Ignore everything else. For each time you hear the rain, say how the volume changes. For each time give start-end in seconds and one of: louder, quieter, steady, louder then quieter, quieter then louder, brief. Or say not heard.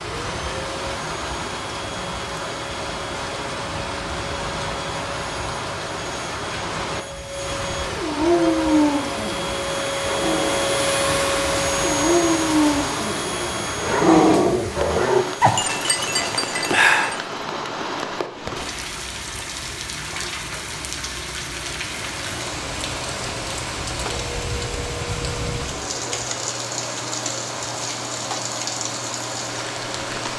0.0-30.3 steady.